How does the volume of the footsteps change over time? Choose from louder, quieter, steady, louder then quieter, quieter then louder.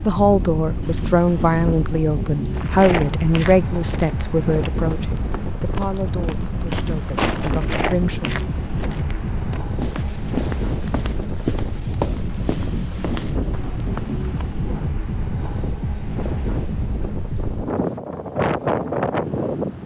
steady.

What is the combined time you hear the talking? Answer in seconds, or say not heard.
8 s.